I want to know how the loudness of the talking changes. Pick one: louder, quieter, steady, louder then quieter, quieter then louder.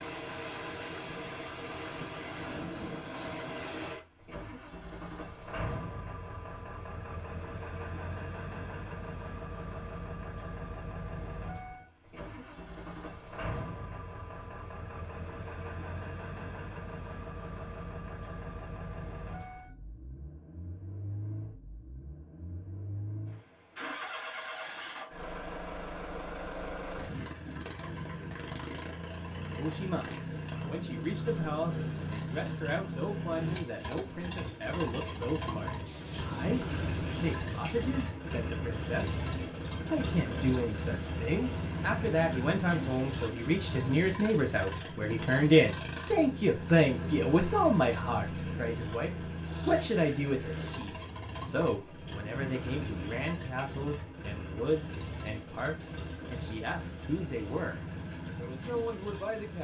louder then quieter.